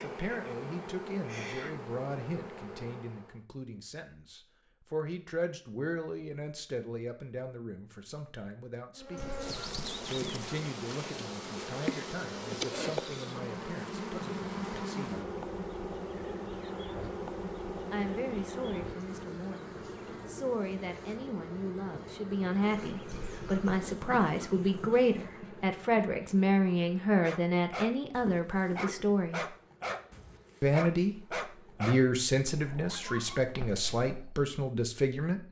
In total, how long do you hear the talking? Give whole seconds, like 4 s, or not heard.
30 s.